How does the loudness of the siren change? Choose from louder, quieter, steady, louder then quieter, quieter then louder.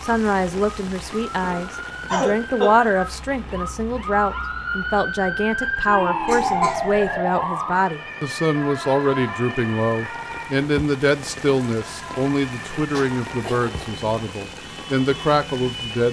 louder then quieter.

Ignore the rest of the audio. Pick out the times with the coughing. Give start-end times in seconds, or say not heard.
1.4-2.7, 5.6-7.0, 12.9-13.7.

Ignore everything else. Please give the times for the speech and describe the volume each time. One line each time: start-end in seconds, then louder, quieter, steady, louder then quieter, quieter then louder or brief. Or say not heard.
0.0-16.0 steady.